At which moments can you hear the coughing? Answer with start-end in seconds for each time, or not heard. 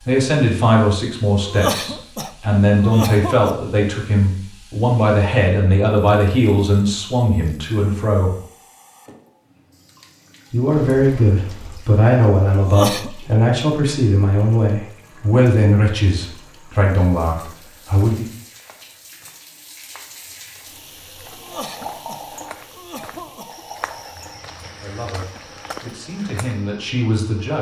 1.4-3.5, 12.6-13.1, 21.2-23.6.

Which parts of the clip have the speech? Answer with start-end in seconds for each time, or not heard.
0.1-8.3, 10.5-18.2, 24.6-27.5.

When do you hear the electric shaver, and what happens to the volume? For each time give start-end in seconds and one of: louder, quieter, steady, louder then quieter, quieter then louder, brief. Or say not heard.
not heard.